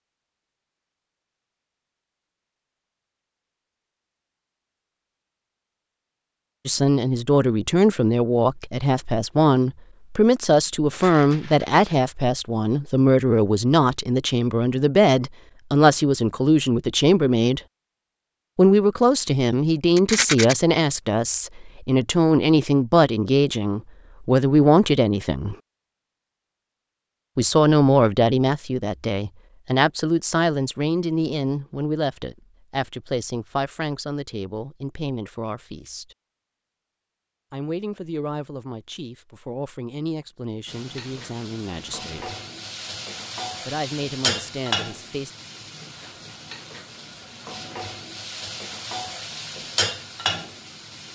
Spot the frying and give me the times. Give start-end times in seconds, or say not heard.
40.6-51.1.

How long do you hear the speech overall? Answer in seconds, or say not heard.
33 s.